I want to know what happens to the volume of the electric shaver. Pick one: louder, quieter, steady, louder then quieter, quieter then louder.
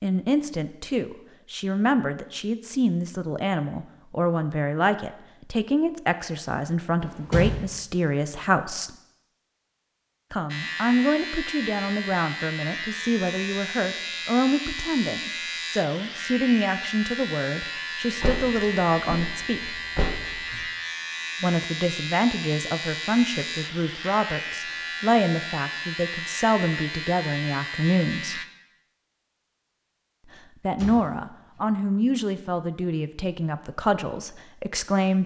steady.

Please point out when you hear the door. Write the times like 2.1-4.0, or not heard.
7.0-7.6, 18.2-20.6, 30.8-31.6.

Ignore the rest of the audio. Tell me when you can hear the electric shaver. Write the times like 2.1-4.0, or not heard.
10.4-28.4.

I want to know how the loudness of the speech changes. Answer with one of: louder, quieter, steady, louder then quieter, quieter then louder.
steady.